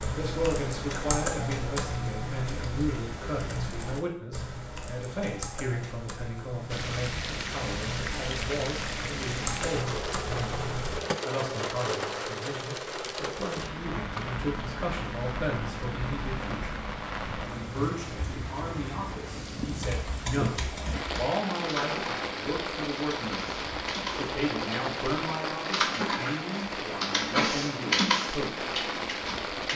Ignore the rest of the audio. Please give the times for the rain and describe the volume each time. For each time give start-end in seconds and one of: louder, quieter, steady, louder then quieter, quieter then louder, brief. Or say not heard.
6.7-29.7 steady.